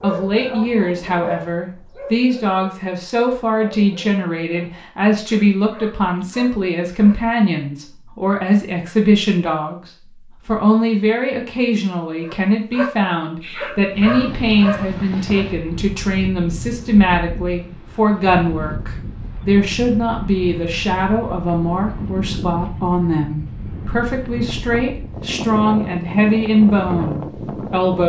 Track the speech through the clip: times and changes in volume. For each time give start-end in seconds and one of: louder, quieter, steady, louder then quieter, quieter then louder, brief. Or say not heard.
0.0-28.0 steady.